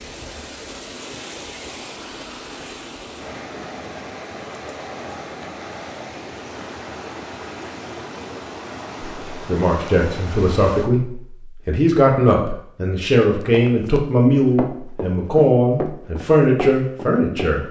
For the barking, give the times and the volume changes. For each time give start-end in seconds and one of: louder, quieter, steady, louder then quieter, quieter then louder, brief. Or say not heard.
not heard.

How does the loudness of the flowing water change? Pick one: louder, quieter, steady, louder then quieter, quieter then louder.
steady.